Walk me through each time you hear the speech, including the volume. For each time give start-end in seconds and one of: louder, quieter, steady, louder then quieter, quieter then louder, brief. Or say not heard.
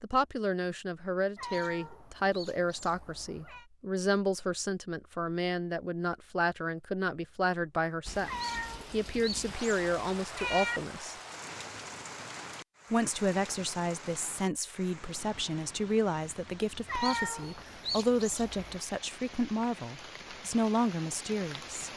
0.0-11.2 steady
12.9-21.9 steady.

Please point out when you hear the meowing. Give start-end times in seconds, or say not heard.
1.4-3.6, 8.2-10.8, 16.9-18.8.